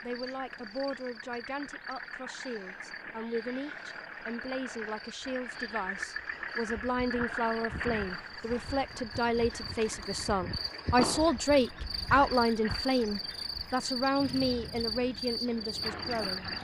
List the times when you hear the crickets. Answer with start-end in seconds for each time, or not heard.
0.0-16.5.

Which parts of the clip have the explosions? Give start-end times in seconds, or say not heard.
10.9-11.4.